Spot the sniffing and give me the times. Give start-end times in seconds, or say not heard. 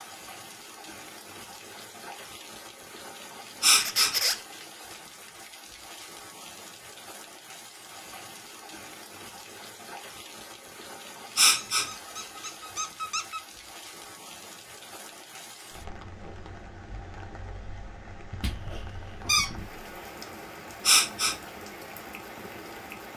3.6-4.1, 11.3-11.8, 20.9-21.4.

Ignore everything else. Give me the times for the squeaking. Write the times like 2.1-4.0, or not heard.
3.8-4.4, 11.4-13.4, 18.4-19.8.